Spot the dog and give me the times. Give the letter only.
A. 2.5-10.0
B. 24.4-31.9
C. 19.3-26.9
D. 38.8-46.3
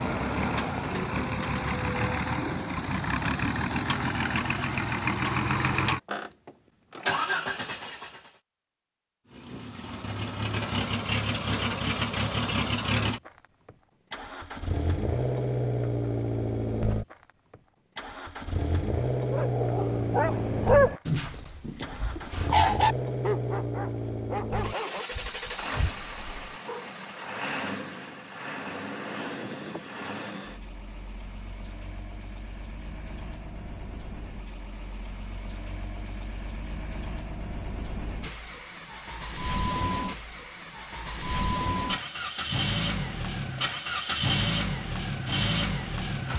C.